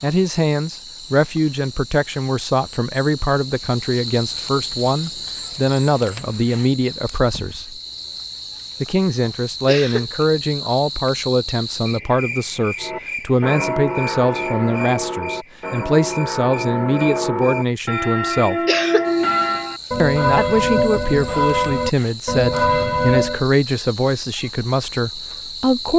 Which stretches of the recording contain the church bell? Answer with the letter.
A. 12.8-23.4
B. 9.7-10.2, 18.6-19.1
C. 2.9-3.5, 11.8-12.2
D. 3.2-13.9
A.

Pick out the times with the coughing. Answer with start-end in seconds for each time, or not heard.
9.7-10.2, 18.6-19.1.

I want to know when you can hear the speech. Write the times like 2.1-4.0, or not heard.
0.0-7.8, 8.8-18.6, 20.0-25.9.